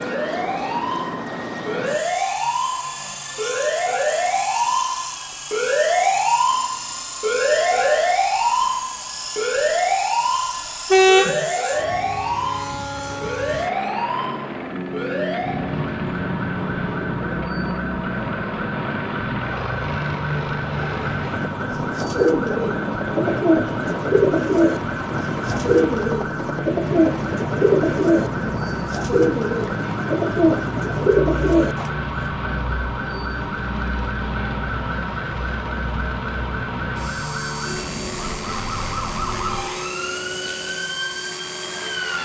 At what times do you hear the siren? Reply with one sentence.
You can hear the siren from 0.0 to 42.2 s.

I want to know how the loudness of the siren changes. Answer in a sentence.
The volume of the siren goes down.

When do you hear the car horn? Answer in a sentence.
The car horn can be heard from 10.9 to 11.4 s.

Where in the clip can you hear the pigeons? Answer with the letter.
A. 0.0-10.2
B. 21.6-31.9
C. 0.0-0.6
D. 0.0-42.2
B.